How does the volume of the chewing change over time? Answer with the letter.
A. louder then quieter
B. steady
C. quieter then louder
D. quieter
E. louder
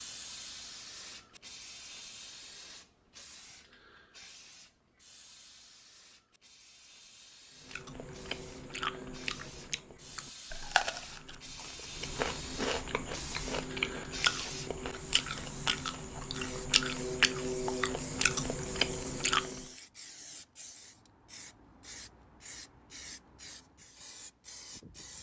E.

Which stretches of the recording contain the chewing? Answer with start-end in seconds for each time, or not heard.
7.7-19.6.